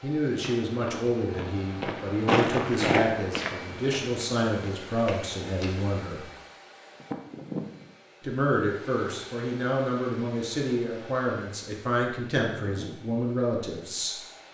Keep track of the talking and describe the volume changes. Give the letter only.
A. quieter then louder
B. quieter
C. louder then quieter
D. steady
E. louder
D.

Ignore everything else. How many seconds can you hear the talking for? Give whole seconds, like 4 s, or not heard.
12 s.